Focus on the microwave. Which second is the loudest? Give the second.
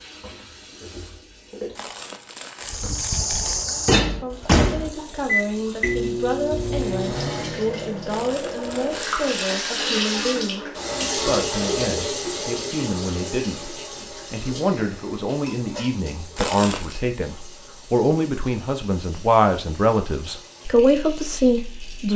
4 s.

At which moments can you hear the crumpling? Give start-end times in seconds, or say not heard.
1.8-3.6, 8.1-10.0, 16.4-16.9.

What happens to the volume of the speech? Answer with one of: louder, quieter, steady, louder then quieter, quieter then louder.
louder.